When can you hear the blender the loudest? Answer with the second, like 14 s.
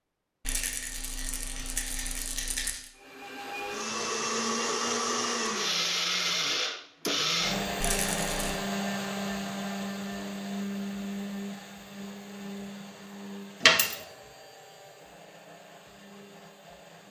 6 s.